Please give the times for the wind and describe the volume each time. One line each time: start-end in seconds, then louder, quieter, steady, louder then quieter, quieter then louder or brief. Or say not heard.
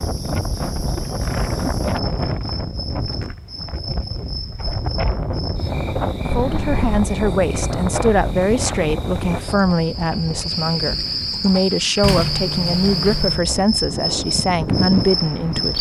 0.0-15.7 quieter then louder.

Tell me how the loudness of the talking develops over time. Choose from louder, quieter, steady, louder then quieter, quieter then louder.
steady.